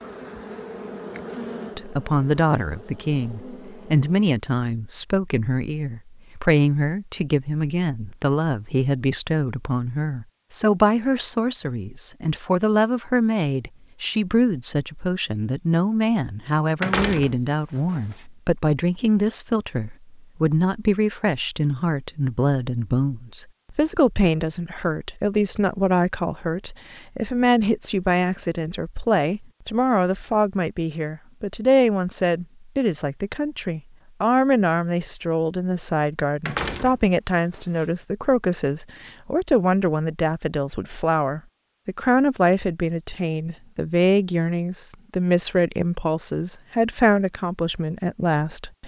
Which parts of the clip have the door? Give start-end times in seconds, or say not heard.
16.8-18.2, 36.5-37.9.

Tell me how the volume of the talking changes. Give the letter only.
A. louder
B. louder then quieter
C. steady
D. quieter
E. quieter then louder
C.